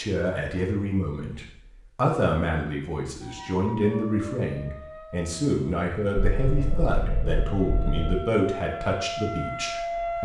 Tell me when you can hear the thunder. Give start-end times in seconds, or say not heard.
6.2-8.2.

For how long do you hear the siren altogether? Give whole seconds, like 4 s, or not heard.
7 s.